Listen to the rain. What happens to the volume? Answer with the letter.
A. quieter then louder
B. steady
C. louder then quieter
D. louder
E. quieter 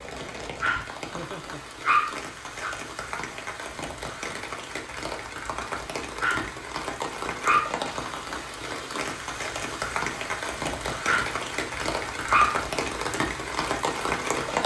D.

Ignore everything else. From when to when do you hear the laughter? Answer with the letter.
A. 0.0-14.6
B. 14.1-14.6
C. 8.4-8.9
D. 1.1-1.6
D.